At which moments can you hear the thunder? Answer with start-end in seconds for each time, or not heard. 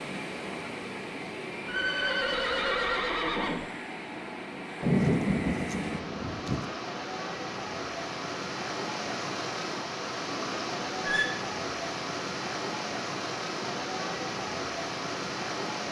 4.8-6.7.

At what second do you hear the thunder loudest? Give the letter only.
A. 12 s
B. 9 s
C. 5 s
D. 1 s
C.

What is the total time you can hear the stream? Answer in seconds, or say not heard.
16 s.